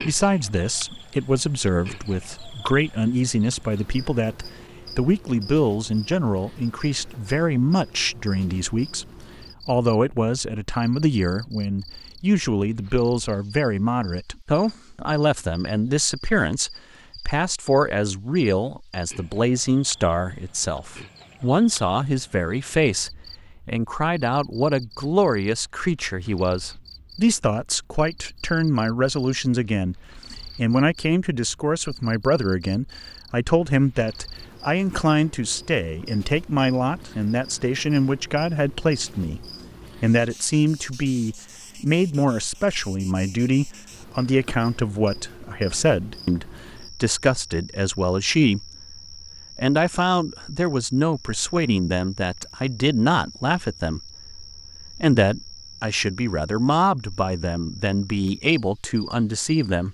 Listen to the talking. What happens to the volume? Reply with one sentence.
The volume of the talking stays about the same.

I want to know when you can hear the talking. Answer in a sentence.
You can hear the talking from 0.0 to 59.8 s.